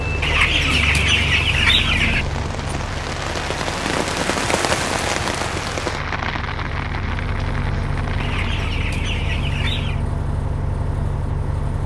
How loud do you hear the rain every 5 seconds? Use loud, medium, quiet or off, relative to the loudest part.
loud, loud, off.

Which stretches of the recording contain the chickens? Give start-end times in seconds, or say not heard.
0.2-2.2, 8.2-10.1.